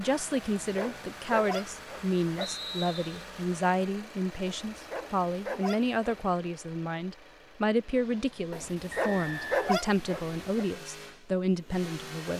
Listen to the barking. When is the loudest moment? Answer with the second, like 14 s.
10 s.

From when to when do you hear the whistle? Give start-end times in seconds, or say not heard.
2.4-3.2, 8.9-9.8.